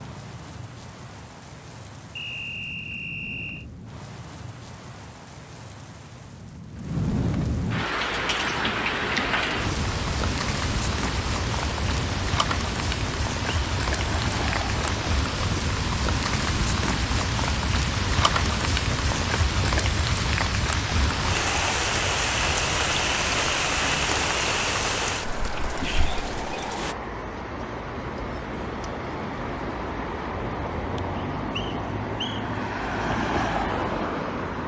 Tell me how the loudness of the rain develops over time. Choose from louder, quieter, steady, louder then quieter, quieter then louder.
louder.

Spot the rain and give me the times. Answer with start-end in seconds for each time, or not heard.
0.0-26.9.